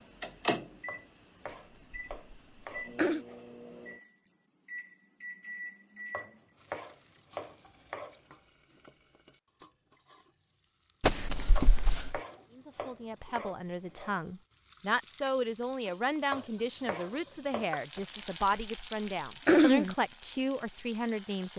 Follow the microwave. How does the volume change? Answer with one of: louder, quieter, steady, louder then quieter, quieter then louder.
quieter then louder.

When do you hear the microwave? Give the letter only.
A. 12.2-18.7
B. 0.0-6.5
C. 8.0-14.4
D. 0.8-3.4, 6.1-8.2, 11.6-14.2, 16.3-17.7
B.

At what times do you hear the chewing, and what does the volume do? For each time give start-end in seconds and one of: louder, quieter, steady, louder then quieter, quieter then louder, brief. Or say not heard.
not heard.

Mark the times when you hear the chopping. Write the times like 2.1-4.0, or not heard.
0.8-3.4, 6.1-8.2, 11.6-14.2, 16.3-17.7.